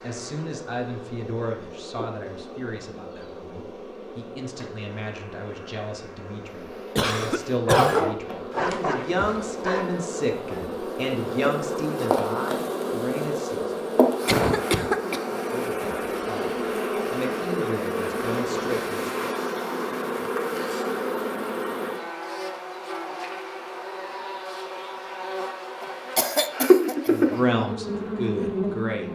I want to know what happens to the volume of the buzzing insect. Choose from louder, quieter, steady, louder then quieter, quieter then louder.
louder.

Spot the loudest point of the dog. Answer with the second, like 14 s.
8 s.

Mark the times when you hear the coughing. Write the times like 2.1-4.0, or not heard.
7.0-8.1, 14.2-15.2, 25.8-27.4.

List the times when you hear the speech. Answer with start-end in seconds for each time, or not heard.
0.0-13.8, 15.3-19.3, 27.1-29.1.